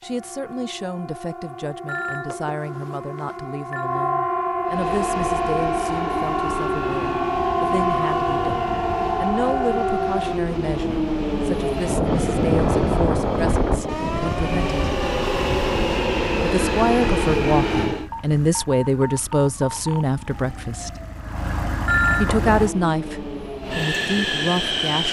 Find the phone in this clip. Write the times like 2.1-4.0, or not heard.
1.9-3.9, 21.9-22.4.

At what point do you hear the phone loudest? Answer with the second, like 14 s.
22 s.